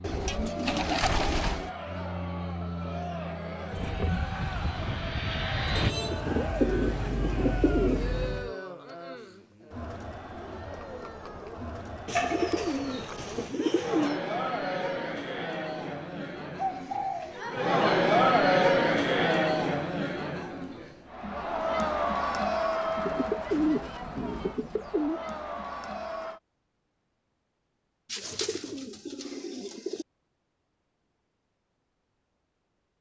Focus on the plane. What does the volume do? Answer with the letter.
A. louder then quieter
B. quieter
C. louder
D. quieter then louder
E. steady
C.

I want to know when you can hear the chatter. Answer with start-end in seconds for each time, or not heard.
0.2-26.4.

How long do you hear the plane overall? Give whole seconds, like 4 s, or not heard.
6 s.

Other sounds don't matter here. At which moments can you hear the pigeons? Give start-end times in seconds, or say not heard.
0.0-1.7, 5.8-8.5, 12.1-14.2, 16.6-17.4, 23.1-25.2, 28.1-30.1.